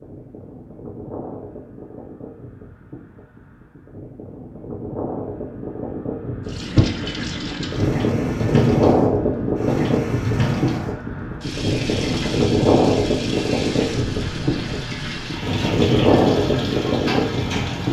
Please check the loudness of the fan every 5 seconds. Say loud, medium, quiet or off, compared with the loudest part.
quiet, loud, loud, loud.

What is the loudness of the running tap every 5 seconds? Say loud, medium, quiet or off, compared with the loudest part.
off, loud, loud, loud.